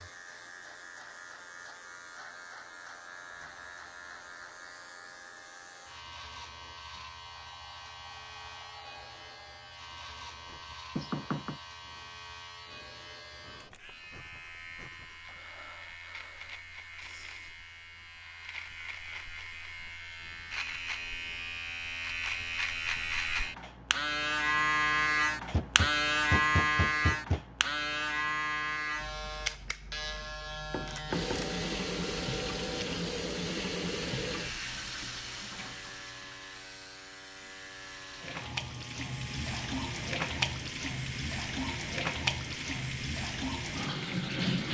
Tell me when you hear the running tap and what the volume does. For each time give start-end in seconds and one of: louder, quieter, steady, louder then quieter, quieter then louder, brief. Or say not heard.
31.1-44.7 quieter then louder.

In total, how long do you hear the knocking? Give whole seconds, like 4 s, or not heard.
3 s.